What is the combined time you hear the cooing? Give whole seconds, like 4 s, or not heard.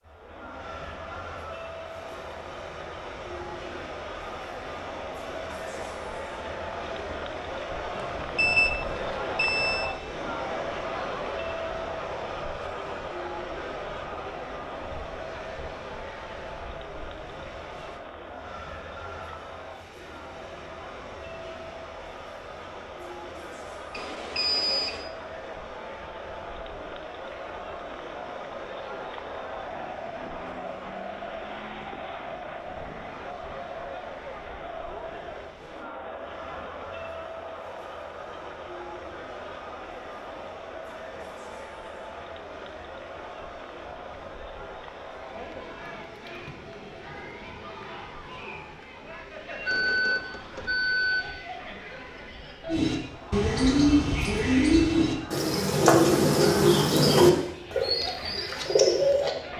7 s.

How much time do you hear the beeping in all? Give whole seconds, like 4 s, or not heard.
5 s.